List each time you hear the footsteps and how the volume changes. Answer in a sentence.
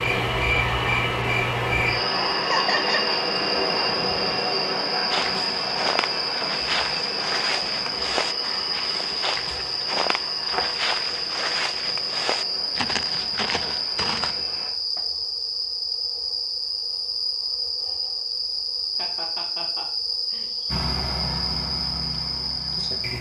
You can hear the footsteps from 5.1 to 14.4 s, at a steady volume.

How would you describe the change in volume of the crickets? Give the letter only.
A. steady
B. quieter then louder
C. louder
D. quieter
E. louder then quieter
A.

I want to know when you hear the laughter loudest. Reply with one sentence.
The loudest moment of the laughter is at 3 seconds.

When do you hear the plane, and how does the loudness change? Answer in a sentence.
You can hear the plane from 0.0 to 14.8 s, getting quieter; and briefly from 20.6 to 23.1 s.